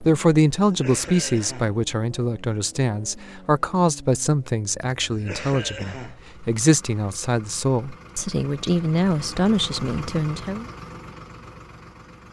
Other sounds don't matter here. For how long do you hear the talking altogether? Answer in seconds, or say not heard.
11 s.